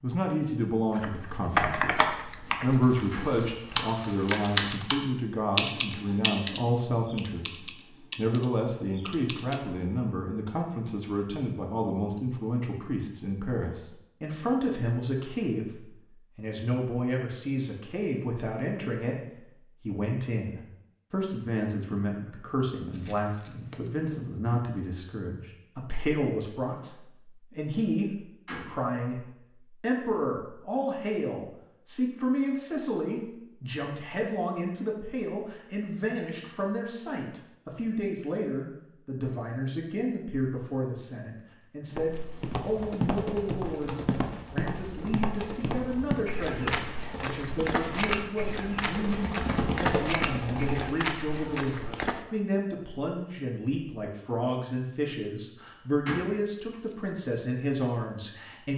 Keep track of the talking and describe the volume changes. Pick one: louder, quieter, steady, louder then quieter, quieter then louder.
steady.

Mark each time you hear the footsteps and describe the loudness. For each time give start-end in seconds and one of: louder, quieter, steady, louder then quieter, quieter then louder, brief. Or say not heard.
41.9-52.2 steady.